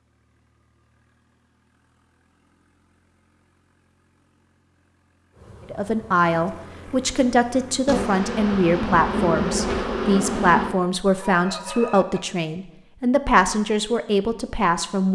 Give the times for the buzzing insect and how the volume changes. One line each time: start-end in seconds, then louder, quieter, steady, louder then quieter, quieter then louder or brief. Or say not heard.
5.3-10.8 louder.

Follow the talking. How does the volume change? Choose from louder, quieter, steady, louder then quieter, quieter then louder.
steady.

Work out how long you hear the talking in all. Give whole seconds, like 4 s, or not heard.
9 s.